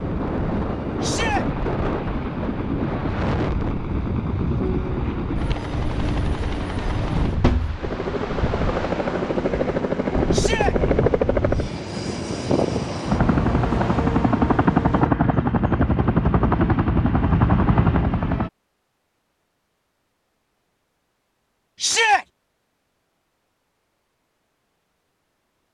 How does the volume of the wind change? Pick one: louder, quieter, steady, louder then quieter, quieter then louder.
steady.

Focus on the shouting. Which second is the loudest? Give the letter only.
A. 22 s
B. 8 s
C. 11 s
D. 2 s
A.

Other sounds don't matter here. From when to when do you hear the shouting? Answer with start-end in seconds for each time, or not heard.
1.0-1.4, 10.3-10.8, 21.8-22.2.